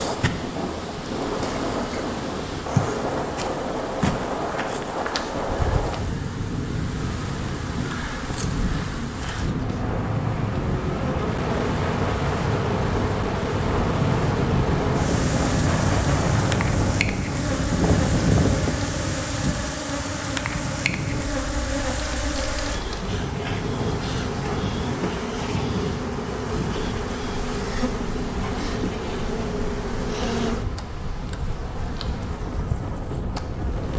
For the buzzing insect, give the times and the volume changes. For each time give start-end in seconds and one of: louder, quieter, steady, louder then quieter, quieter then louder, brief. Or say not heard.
0.0-33.9 steady.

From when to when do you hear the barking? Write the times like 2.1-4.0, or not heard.
not heard.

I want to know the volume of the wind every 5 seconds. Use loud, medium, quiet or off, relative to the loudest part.
medium, medium, loud, loud, medium, medium, medium.